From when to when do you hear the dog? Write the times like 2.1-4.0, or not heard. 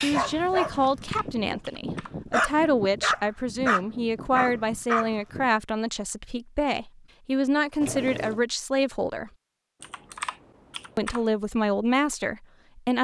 0.0-5.5.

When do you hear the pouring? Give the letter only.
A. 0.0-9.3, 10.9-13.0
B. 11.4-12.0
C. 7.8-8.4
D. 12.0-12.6
C.